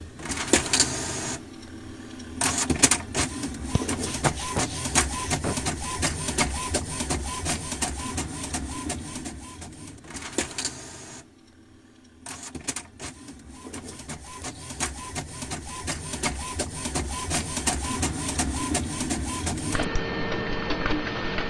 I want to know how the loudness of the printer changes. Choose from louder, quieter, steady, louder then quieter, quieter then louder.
quieter then louder.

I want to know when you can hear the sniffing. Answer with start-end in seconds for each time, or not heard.
3.7-5.5.